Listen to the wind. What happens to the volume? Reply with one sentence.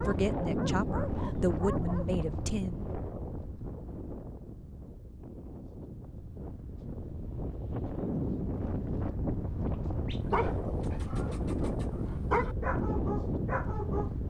The loudness of the wind goes down, then up.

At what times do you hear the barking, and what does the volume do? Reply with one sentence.
You can hear the barking briefly from 0.0 to 2.2 s; and from 10.1 to 14.1 s, getting louder then quieter.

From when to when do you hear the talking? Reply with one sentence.
You can hear the talking from 0.1 to 2.8 s.